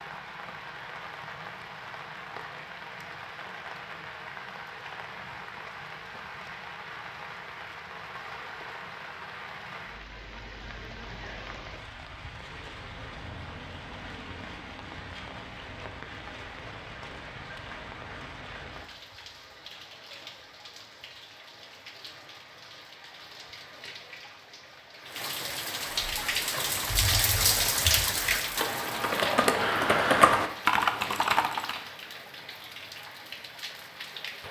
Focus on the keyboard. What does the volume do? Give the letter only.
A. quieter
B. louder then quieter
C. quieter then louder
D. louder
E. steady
D.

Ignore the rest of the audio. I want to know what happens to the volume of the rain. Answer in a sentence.
The loudness of the rain goes up.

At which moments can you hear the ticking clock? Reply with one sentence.
You can't hear the ticking clock here.